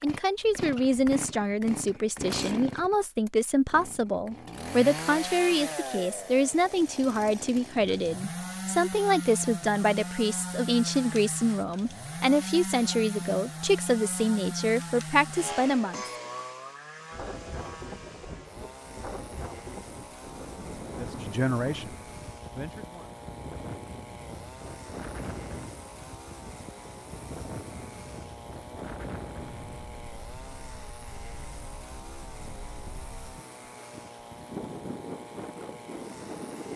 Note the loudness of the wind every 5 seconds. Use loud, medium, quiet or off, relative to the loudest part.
off, off, off, loud, loud, loud, medium, loud.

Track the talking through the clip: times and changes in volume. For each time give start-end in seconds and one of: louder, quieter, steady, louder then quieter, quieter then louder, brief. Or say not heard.
0.0-16.1 steady
20.9-23.1 brief.